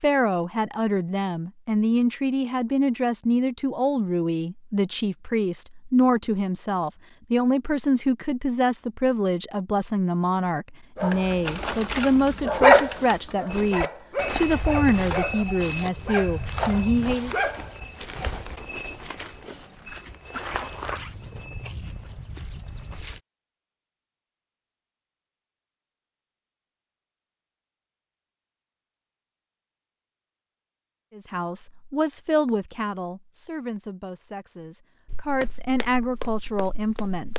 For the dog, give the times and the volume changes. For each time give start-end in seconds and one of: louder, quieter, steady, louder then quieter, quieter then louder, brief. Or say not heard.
10.9-17.9 louder then quieter.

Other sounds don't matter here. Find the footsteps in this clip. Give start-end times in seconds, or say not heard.
13.4-23.2, 35.0-37.3.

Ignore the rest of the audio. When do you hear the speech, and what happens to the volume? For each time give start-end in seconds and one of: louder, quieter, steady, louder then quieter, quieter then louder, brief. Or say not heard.
0.0-17.4 steady
31.1-37.3 quieter then louder.